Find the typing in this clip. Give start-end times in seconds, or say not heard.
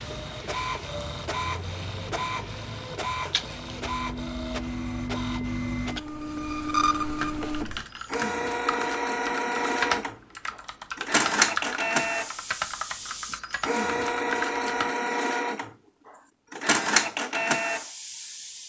7.2-14.9.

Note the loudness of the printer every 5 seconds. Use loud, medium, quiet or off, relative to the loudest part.
medium, loud, loud, loud.